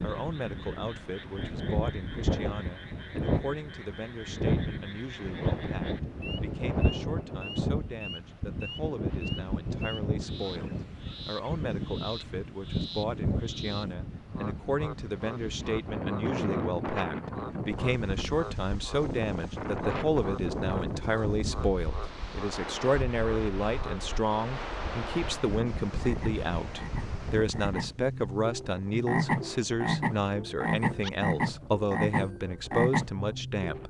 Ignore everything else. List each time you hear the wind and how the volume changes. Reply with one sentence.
The wind can be heard from 0.0 to 33.8 s, getting quieter.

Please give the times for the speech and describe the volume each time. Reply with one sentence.
You can hear the speech from 0.0 to 33.8 s, getting louder.